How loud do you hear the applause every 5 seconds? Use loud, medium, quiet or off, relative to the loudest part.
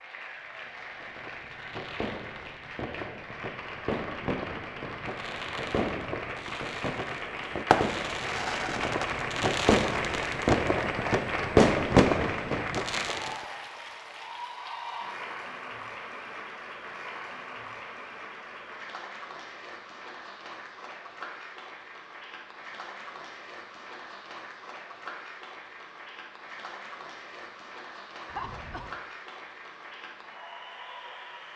medium, loud, loud, medium, medium, medium, medium.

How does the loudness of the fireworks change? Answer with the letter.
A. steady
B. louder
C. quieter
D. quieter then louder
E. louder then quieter
B.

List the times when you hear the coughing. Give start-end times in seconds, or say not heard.
28.2-29.0.